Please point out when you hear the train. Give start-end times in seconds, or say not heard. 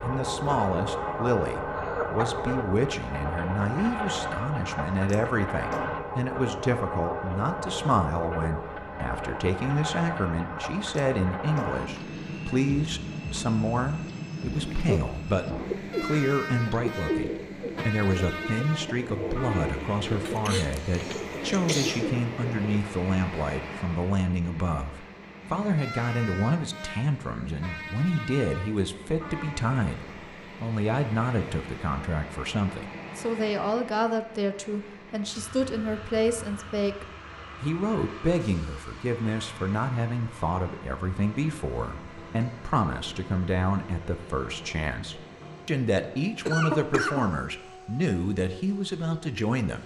0.0-49.8.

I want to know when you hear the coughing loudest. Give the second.
47 s.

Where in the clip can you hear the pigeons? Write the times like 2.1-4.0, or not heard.
14.5-22.6.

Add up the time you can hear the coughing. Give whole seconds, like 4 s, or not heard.
3 s.